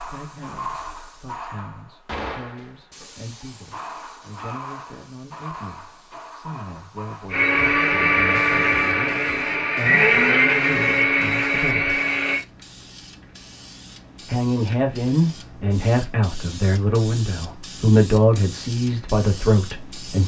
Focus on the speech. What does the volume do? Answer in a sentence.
The volume of the speech goes up.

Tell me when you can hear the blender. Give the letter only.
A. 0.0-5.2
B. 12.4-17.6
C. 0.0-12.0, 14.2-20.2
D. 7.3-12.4
D.